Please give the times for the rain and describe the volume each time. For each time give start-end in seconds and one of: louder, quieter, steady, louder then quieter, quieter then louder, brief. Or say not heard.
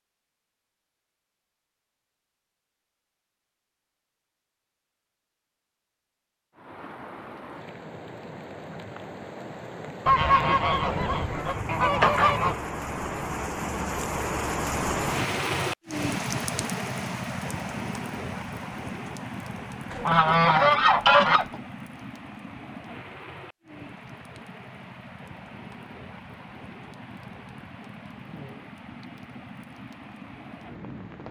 6.5-31.2 louder then quieter.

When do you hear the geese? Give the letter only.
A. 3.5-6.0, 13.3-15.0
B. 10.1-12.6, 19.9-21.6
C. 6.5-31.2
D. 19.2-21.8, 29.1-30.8
B.